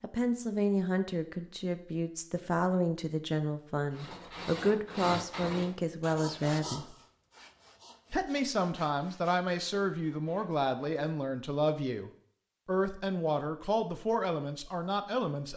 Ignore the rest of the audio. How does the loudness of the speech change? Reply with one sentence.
The volume of the speech stays about the same.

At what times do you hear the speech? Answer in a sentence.
The speech can be heard from 0.0 to 7.0 s and from 8.1 to 15.5 s.